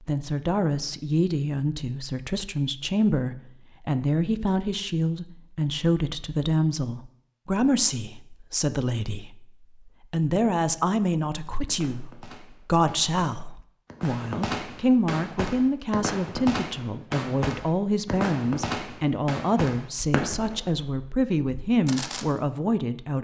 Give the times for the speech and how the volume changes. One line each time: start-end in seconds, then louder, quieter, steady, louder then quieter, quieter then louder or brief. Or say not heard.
0.1-23.1 steady.